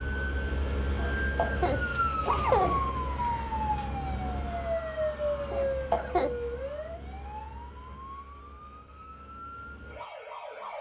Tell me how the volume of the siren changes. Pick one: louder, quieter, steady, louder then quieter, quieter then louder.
quieter.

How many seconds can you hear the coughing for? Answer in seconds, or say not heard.
3 s.